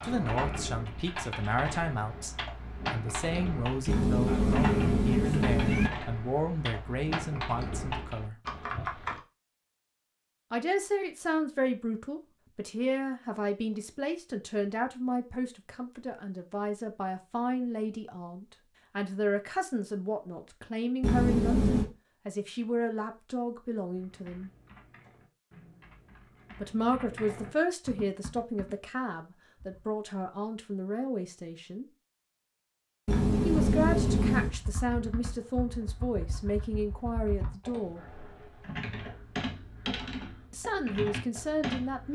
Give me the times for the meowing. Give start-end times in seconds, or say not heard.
3.9-5.9, 21.0-21.9, 33.0-34.5.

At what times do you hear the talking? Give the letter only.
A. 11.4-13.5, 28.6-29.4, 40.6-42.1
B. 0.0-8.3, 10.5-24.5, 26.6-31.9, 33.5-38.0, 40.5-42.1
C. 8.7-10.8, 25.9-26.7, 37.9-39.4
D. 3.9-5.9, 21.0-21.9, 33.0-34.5
B.